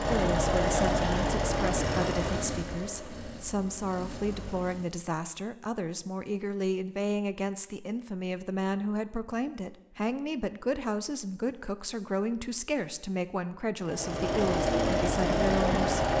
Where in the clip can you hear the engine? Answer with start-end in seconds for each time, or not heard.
0.0-4.9, 13.8-16.1.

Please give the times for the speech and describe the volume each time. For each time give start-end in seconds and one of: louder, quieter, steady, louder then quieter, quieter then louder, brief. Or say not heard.
0.0-16.1 steady.